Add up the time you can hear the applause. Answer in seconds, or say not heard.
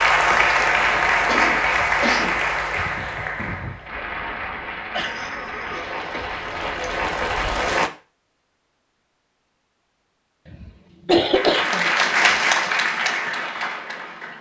11 s.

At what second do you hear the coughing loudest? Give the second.
11 s.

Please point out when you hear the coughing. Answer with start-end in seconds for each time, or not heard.
1.2-2.4, 5.0-6.9, 10.5-12.3.